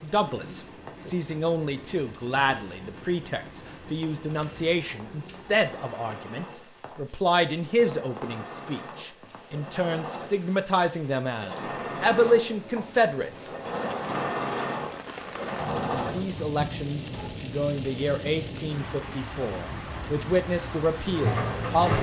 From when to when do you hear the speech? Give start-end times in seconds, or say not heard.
0.0-13.5, 15.9-21.9.